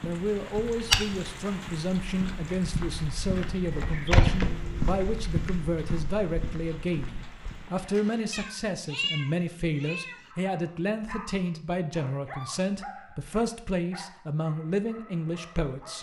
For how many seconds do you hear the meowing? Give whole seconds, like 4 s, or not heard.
2 s.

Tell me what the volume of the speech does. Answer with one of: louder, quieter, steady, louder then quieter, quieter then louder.
steady.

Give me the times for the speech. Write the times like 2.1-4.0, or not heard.
0.0-15.9.